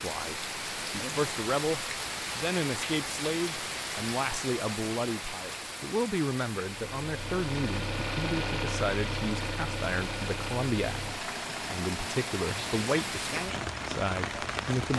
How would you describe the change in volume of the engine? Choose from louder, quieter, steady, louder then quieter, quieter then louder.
quieter.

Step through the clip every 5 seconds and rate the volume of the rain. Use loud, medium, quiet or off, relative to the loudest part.
loud, medium, loud.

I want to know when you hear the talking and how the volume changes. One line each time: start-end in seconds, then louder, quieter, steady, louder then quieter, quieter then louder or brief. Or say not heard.
0.0-14.9 steady.